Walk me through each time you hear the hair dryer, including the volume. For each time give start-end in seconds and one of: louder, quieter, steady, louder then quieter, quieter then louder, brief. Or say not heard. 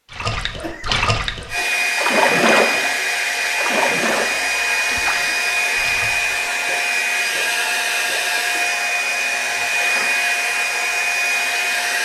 1.4-12.0 steady.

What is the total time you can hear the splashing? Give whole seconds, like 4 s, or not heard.
8 s.